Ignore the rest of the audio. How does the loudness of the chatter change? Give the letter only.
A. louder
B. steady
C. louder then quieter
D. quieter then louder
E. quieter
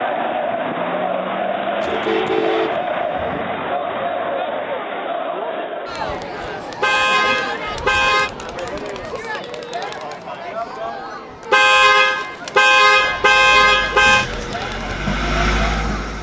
E.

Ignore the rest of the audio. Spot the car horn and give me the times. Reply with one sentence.
The car horn can be heard from 1.8 to 3.4 s, from 6.8 to 8.3 s and from 11.5 to 14.2 s.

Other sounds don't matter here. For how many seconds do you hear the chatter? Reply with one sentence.
The chatter can be heard for 16 seconds in total.